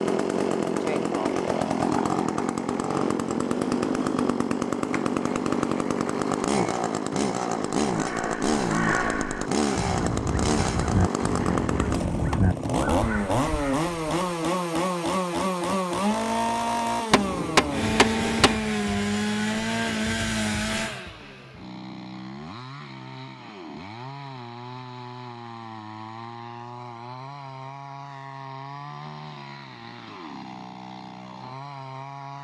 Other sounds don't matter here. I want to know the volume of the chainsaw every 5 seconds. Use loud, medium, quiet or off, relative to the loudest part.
loud, loud, loud, loud, medium, quiet, quiet.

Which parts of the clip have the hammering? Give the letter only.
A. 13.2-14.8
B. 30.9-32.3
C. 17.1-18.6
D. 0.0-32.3
C.